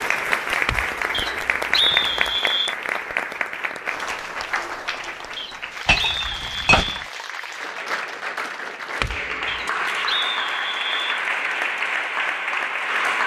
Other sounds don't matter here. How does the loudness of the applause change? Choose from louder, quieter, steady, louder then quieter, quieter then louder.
quieter then louder.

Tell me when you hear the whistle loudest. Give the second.
2 s.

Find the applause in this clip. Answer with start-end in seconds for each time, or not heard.
0.0-13.2.